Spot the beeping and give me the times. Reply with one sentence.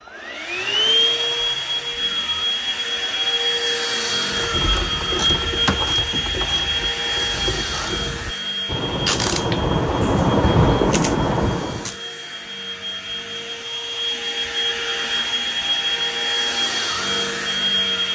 You can't hear the beeping here.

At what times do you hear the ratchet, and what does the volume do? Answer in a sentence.
The ratchet can be heard from 4.3 to 11.9 s, getting quieter then louder.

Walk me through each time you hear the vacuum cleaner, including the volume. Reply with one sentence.
You can hear the vacuum cleaner from 0.1 to 18.1 s, getting quieter then louder.